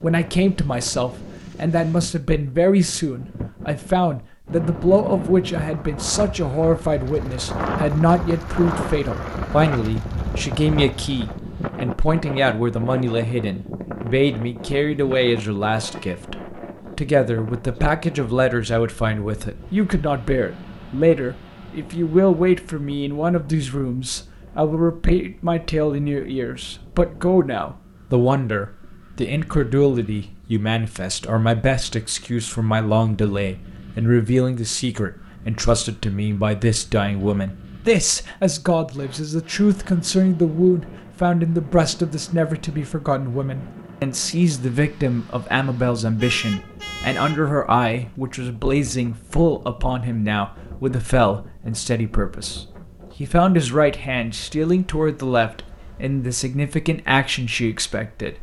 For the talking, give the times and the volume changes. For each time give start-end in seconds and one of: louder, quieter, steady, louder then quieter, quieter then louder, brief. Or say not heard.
0.0-58.3 steady.